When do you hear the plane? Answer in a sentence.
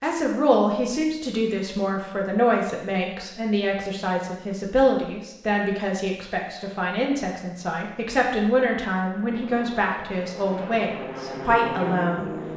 The plane can be heard from 9.1 to 12.5 s.